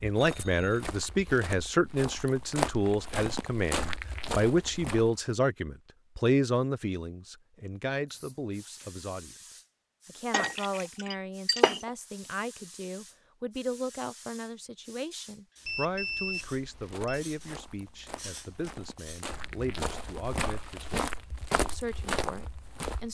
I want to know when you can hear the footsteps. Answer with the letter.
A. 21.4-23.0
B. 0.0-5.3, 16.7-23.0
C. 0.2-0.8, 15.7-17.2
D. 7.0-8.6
B.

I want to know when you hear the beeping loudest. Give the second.
16 s.